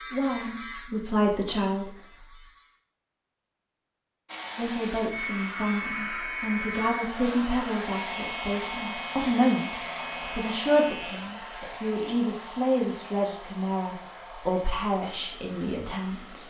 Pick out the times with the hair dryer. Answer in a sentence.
You can hear the hair dryer from 4.2 to 16.4 s.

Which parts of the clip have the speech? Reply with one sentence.
You can hear the speech from 0.0 to 1.9 s and from 4.5 to 16.4 s.